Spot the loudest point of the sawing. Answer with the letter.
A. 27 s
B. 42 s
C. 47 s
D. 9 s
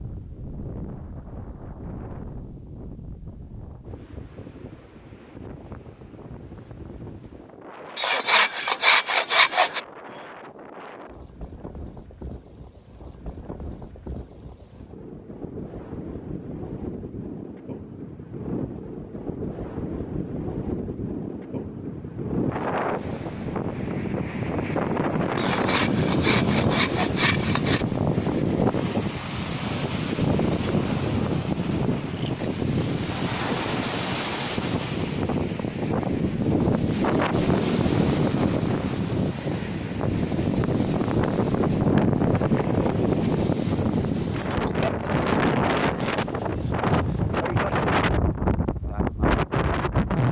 D.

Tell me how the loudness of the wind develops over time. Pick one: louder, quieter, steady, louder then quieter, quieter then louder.
louder.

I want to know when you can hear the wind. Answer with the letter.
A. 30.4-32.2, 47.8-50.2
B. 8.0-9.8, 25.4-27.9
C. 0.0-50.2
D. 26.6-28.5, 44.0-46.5
C.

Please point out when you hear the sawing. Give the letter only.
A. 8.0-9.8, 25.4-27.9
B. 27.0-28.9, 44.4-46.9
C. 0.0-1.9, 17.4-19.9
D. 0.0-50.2
A.